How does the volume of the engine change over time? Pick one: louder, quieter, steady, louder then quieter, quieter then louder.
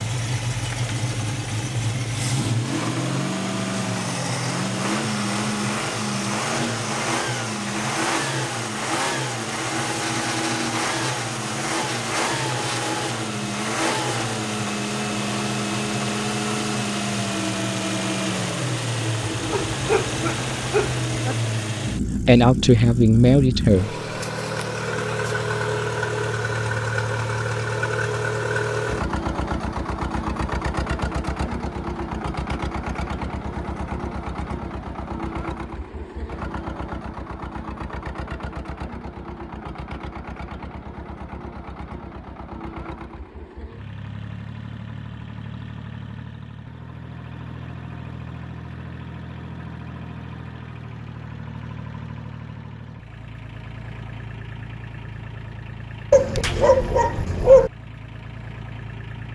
quieter.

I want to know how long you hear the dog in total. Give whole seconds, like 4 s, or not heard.
4 s.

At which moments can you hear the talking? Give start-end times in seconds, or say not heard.
22.2-23.9.